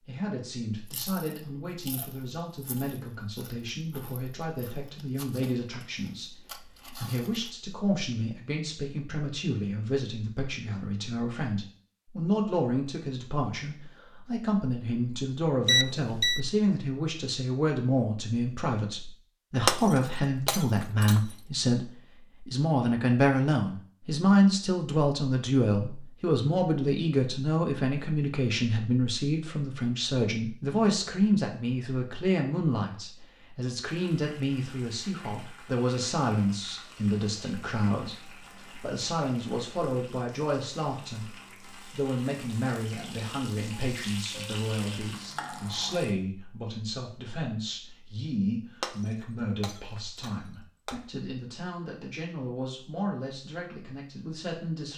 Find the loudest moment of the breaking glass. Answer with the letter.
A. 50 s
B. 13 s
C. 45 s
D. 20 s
D.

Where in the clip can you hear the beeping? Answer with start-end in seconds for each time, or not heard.
15.7-16.4.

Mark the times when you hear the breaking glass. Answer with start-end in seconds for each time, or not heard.
19.6-21.4, 48.8-51.0.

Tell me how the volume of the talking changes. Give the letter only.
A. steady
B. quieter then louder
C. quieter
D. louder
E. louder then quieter
E.